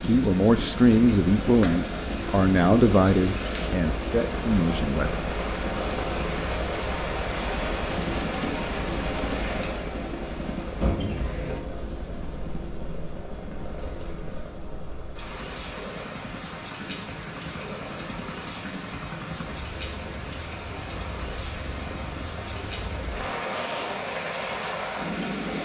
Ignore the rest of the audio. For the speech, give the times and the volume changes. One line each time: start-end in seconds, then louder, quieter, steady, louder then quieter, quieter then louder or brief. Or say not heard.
0.1-5.2 quieter.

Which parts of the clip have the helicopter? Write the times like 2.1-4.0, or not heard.
0.0-25.6.